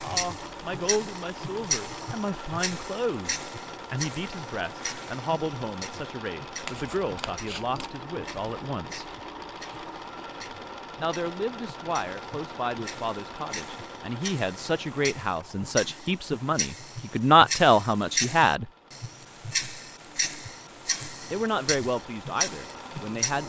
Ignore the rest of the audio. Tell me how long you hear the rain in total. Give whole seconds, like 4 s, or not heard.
not heard.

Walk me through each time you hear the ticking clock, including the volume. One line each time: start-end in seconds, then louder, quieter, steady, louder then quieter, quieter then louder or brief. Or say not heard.
0.0-23.4 quieter then louder.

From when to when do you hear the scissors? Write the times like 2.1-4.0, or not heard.
6.6-7.9.